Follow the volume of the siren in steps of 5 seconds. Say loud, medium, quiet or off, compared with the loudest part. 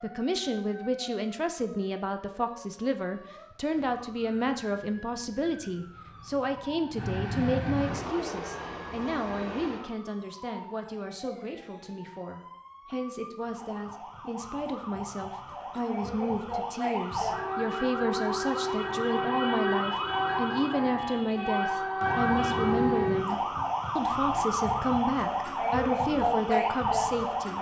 quiet, quiet, quiet, loud, loud, loud.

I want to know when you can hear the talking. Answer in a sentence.
You can hear the talking from 0.0 to 27.5 s.